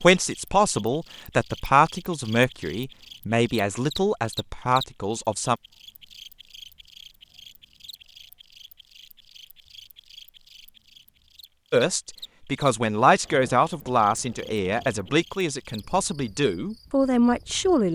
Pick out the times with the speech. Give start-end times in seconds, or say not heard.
0.0-5.5, 11.7-17.9.